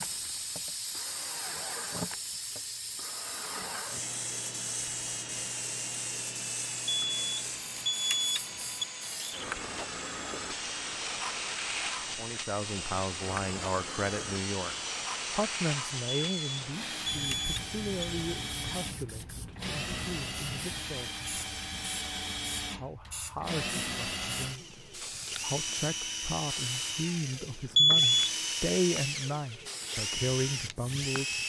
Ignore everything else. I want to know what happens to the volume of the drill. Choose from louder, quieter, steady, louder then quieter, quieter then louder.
louder.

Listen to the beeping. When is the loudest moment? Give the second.
28 s.